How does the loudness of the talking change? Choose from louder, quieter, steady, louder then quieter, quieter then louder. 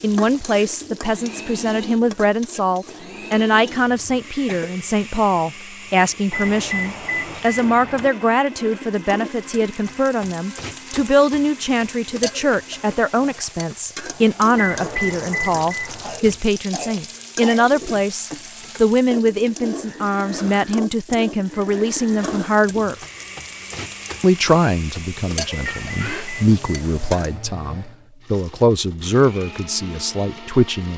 steady.